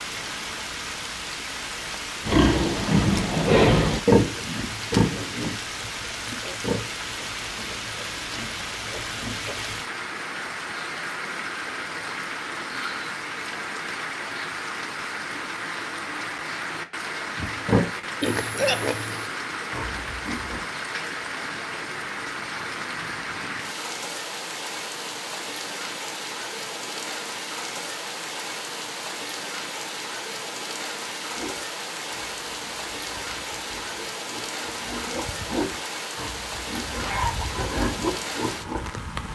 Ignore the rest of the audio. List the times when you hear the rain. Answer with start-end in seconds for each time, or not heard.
0.0-39.2.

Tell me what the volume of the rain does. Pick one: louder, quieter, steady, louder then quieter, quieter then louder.
steady.